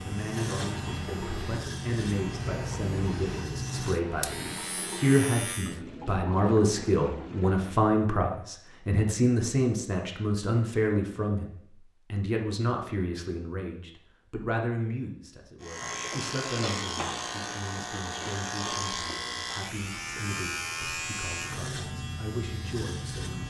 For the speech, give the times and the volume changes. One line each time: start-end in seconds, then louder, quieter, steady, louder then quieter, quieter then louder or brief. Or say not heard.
0.0-23.4 louder then quieter.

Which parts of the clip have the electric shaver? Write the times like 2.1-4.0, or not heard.
0.0-5.8, 15.6-23.4.